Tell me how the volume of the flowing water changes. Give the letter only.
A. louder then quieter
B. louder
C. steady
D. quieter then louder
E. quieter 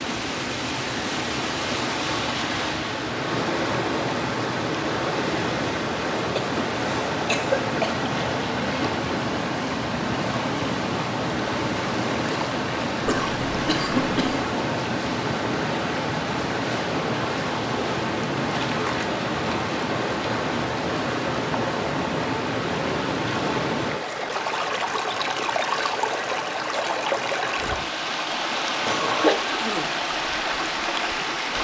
C.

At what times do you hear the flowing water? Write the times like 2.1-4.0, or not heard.
0.0-31.6.